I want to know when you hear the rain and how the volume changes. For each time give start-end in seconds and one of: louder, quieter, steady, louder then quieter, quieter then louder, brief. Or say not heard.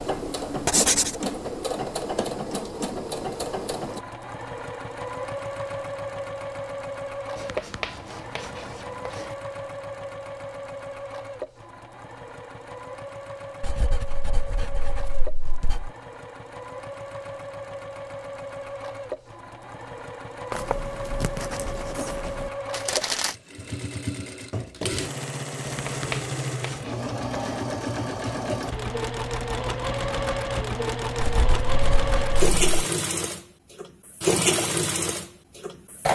not heard.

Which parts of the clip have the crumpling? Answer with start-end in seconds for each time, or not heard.
22.7-23.4.